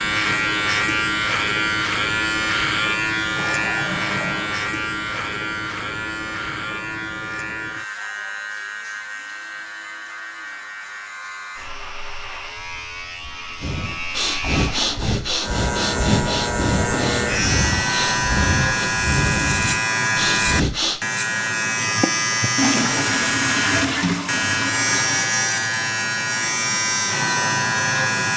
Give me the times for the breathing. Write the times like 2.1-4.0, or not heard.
13.6-21.0.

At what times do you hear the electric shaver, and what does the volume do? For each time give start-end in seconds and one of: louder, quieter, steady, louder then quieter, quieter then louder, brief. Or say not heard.
0.0-28.3 quieter then louder.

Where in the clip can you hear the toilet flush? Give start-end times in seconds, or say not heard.
3.3-4.6, 13.2-15.2, 22.6-25.4.